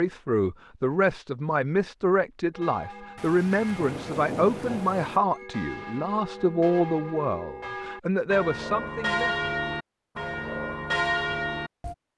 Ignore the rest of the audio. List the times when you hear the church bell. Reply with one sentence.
You can hear the church bell from 2.5 to 11.9 s.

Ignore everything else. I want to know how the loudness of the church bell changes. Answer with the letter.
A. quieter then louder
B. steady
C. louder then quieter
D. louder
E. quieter
D.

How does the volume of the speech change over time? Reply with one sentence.
The loudness of the speech stays about the same.